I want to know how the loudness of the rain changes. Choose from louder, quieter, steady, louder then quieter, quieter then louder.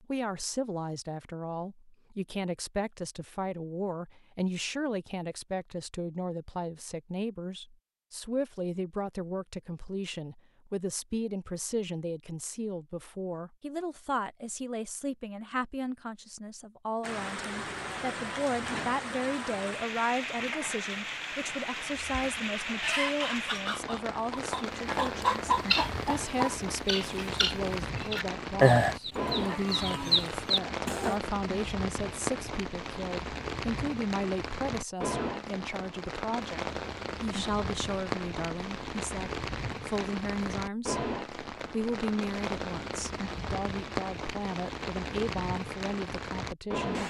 steady.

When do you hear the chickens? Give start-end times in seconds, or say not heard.
22.1-31.1.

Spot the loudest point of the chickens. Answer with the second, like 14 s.
29 s.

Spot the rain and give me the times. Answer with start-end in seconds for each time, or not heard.
17.0-47.0.